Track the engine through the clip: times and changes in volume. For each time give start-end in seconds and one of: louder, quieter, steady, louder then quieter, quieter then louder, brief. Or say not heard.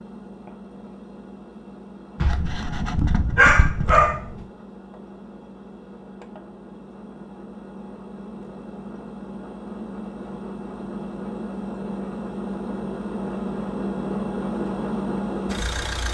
0.0-16.1 louder.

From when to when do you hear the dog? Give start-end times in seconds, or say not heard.
2.2-4.5.